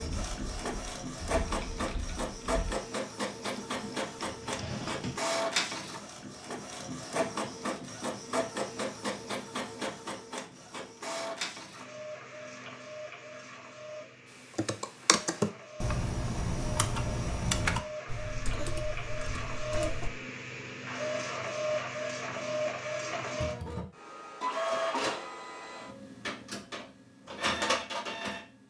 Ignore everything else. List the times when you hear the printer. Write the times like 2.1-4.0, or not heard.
0.0-28.6.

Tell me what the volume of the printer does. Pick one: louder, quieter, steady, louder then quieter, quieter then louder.
quieter then louder.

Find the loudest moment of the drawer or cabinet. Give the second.
5 s.